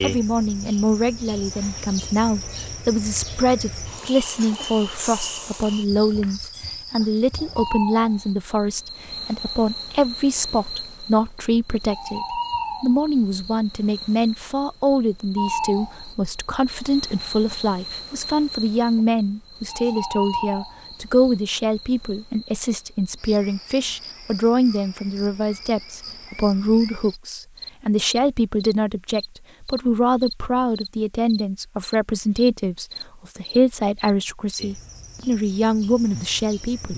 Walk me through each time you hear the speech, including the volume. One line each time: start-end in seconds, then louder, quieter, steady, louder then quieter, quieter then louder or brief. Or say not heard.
0.0-36.9 steady.